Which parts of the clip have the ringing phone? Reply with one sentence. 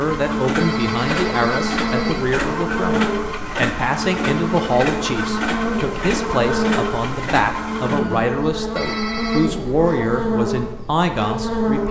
The ringing phone can be heard from 0.6 to 2.2 s and from 8.8 to 9.4 s.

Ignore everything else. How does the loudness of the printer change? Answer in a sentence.
The loudness of the printer stays about the same.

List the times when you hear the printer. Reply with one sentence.
You can hear the printer from 0.0 to 8.3 s.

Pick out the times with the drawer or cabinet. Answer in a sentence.
The drawer or cabinet can't be heard in this clip.